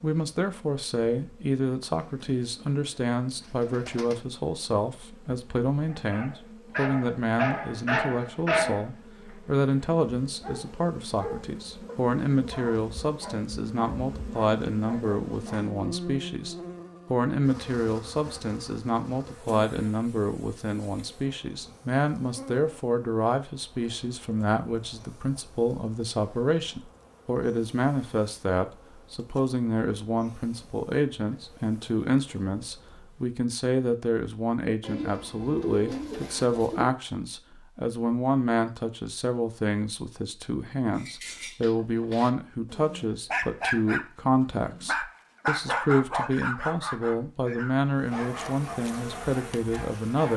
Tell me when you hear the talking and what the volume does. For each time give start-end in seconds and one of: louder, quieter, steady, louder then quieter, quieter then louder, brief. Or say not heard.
0.0-50.3 steady.